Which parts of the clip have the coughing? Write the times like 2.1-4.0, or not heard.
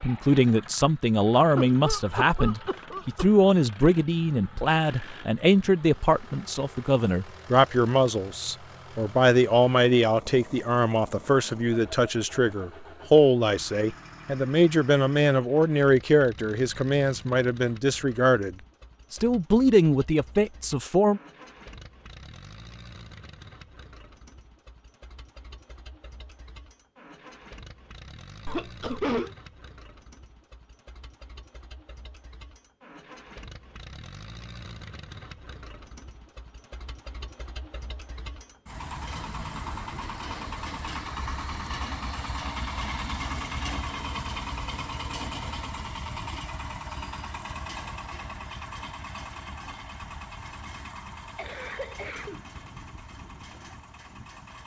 1.6-3.2, 28.4-29.3, 51.4-52.4.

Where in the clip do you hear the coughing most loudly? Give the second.
29 s.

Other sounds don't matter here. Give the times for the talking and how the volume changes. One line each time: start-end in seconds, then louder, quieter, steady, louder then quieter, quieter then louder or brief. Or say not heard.
0.0-21.2 steady.